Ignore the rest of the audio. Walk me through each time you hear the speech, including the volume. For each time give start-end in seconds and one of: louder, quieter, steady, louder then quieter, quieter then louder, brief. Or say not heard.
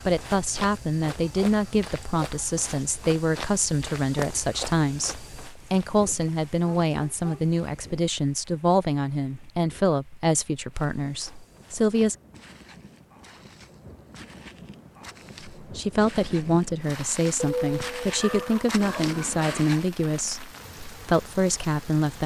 0.1-12.2 steady
15.6-22.2 steady.